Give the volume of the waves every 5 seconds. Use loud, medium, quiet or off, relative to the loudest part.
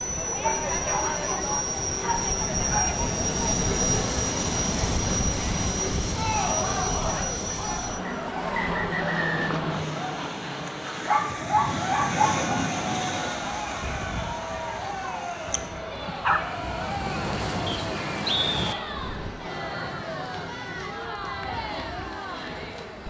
loud, loud, loud, loud, off.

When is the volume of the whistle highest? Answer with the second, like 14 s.
18 s.